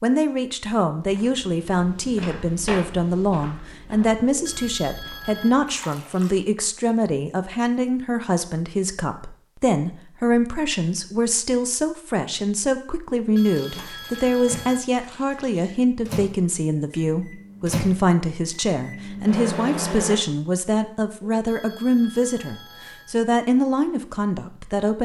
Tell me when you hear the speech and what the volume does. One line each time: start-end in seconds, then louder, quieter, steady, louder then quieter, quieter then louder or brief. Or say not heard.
0.0-25.0 steady.